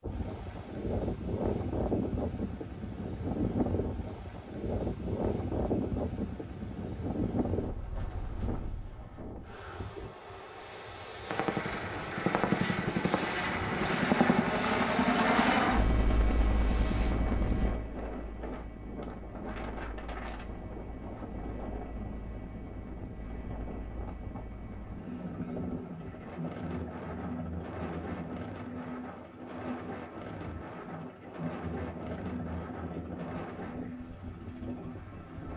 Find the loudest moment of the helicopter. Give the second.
15 s.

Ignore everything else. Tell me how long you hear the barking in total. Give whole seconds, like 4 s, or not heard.
not heard.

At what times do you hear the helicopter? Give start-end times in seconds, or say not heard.
11.2-35.5.